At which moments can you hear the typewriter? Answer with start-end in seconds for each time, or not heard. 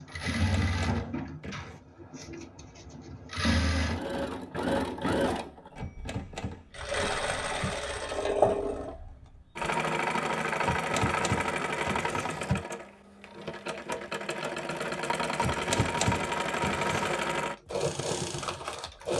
0.2-1.8, 5.8-7.8, 10.6-12.7, 15.3-17.1.